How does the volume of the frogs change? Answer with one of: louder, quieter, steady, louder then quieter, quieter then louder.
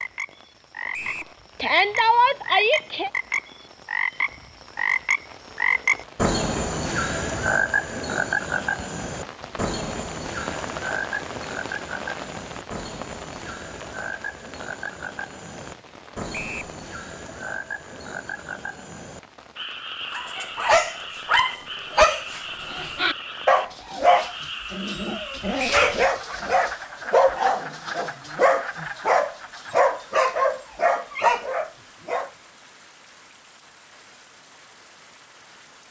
quieter.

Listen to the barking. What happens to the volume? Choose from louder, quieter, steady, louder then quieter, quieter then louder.
steady.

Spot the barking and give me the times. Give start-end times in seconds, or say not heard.
20.1-32.3.